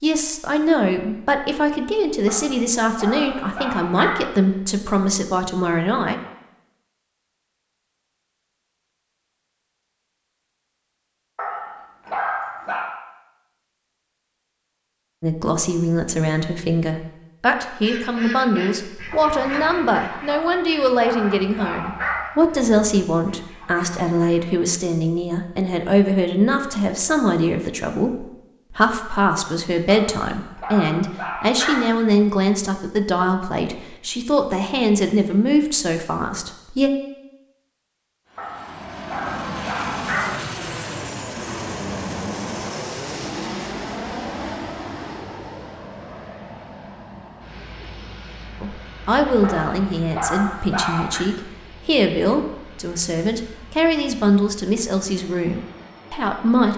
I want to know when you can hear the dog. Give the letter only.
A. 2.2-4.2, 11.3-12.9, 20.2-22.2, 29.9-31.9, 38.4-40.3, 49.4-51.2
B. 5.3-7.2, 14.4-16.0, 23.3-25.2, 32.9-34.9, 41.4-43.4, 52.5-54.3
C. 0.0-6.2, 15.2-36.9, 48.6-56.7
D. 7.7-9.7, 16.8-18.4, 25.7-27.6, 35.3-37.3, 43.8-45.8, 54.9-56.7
A.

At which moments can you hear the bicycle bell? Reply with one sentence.
You can't hear the bicycle bell here.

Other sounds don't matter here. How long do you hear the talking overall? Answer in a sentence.
The talking can be heard for 36 seconds in total.